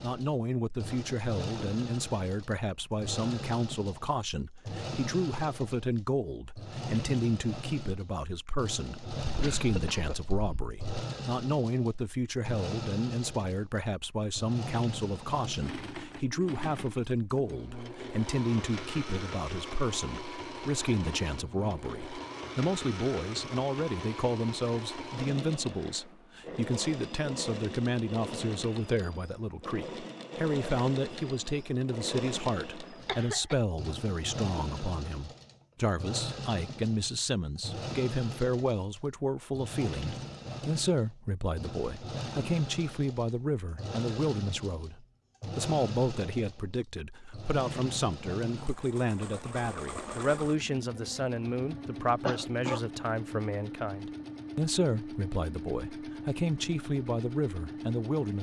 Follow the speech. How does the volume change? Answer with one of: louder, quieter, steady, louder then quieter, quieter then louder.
steady.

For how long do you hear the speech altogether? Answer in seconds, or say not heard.
58 s.